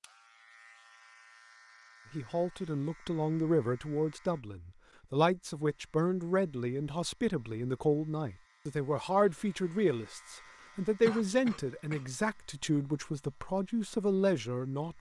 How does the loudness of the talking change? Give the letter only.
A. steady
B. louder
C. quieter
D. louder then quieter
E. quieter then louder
A.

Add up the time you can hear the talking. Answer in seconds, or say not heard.
13 s.